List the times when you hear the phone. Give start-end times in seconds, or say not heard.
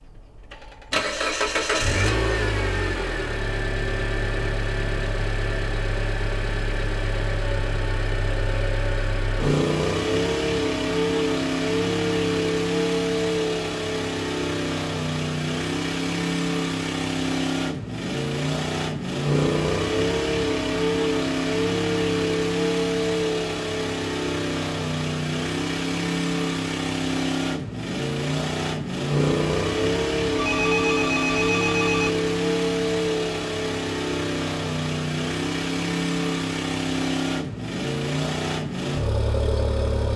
30.4-32.1.